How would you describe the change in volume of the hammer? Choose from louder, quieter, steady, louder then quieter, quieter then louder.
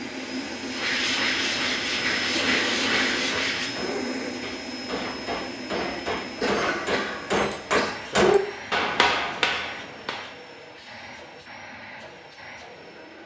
louder.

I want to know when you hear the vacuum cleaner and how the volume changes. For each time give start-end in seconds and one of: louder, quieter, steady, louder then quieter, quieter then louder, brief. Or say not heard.
0.0-13.2 quieter.